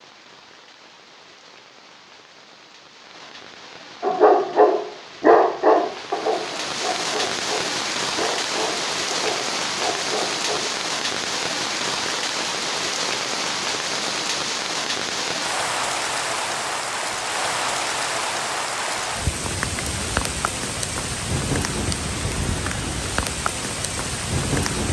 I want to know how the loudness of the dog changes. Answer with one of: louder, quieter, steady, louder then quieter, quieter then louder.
quieter.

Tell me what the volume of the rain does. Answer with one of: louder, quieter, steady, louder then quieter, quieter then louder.
louder.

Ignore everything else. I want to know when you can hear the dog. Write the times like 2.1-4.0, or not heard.
4.0-10.8.